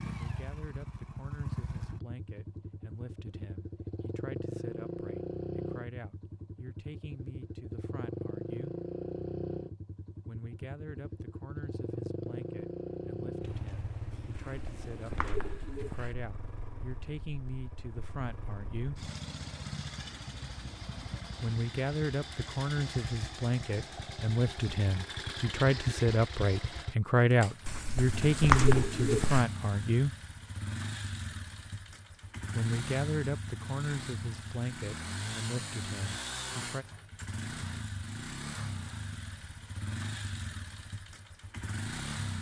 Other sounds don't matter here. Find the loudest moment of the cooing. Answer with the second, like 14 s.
29 s.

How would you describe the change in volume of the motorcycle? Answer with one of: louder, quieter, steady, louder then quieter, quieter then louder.
steady.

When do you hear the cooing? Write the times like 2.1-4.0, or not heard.
14.3-16.1, 27.6-29.4.